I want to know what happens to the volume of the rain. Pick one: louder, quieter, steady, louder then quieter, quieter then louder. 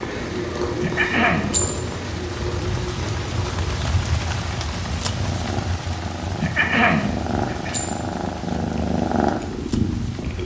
louder then quieter.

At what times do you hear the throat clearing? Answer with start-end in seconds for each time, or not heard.
0.8-1.6, 6.4-7.8.